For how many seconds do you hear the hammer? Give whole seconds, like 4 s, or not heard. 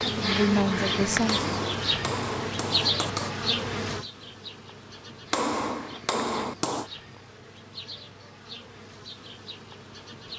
4 s.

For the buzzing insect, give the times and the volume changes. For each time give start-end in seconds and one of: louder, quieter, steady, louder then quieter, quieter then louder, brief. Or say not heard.
0.0-10.3 quieter.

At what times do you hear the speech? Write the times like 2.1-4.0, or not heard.
0.0-1.4.